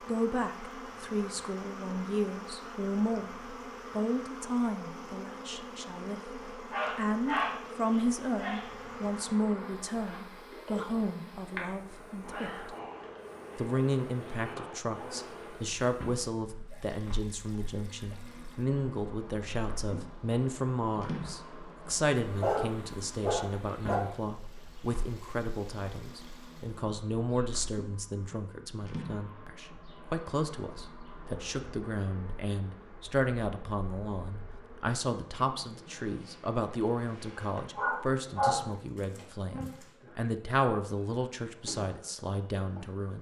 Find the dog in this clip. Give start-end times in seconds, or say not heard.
6.7-8.7, 22.2-24.0, 37.8-39.9.